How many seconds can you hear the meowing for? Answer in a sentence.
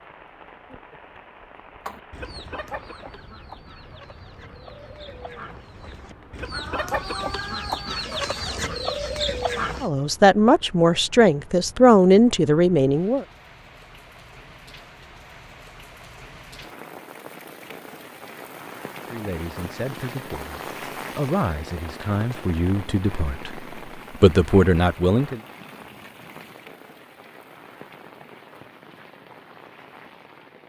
The meowing can be heard for 2 seconds in total.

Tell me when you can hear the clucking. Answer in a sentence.
The clucking can be heard from 1.9 to 9.9 s.